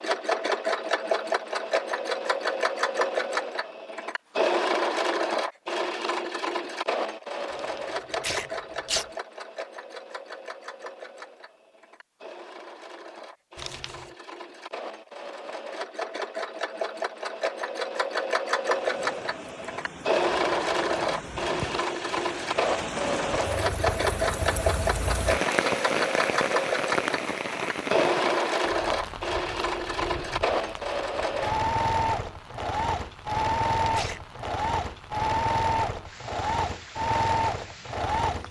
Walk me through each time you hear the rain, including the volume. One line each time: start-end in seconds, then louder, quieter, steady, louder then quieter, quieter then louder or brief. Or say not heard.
18.6-38.4 louder then quieter.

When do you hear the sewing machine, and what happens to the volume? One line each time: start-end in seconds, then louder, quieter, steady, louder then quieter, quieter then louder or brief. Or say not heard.
0.0-38.4 quieter then louder.